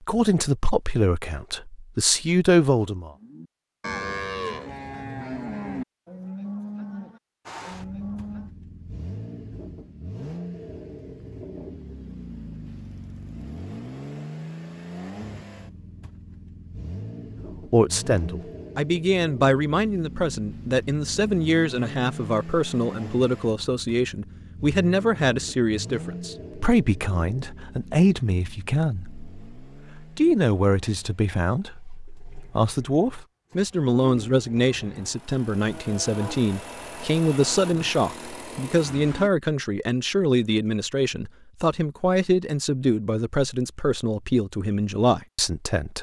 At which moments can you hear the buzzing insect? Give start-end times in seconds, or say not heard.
not heard.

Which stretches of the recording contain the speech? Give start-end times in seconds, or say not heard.
0.1-3.1, 17.7-45.9.